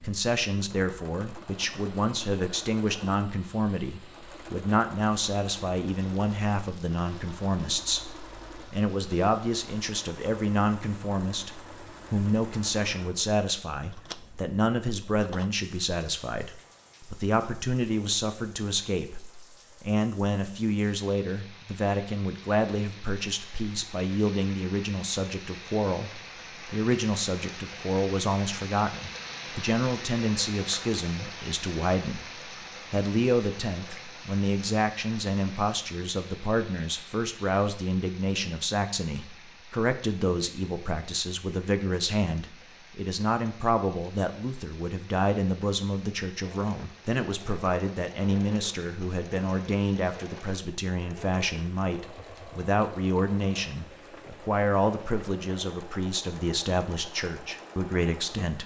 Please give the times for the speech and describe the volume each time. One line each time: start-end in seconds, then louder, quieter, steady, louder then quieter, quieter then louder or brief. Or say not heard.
0.0-58.6 steady.